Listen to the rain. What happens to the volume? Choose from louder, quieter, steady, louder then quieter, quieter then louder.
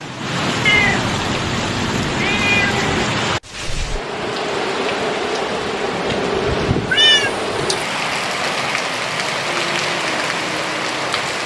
steady.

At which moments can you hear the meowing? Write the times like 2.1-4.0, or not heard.
0.7-3.0, 6.9-7.6.